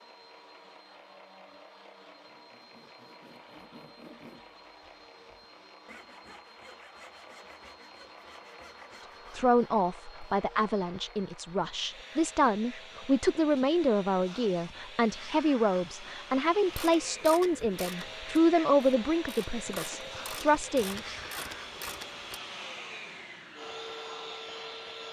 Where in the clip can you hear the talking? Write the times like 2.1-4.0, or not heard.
9.3-21.0.